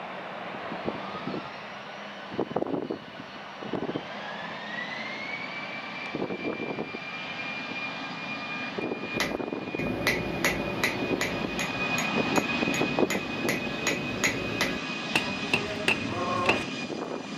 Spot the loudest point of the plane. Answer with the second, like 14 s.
13 s.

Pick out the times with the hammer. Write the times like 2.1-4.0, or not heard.
9.1-16.6.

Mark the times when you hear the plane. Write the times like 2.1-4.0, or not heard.
0.0-17.3.